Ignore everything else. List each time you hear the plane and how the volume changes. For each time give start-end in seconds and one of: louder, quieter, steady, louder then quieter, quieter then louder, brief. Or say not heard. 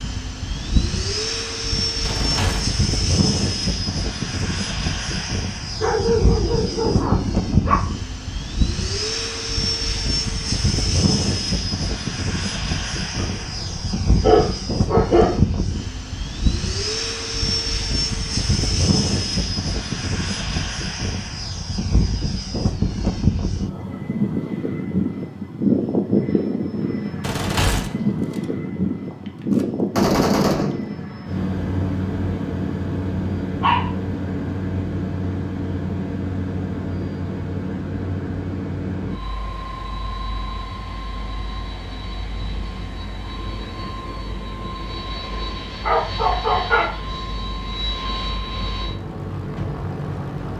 0.0-50.5 quieter.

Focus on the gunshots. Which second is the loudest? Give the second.
30 s.